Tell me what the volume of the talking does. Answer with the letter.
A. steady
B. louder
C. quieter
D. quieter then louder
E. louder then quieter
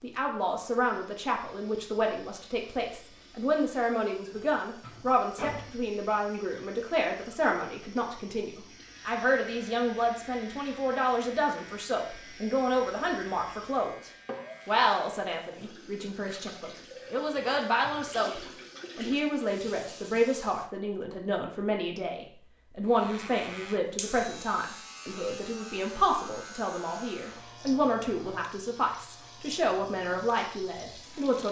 A.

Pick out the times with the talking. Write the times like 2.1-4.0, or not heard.
0.0-31.4.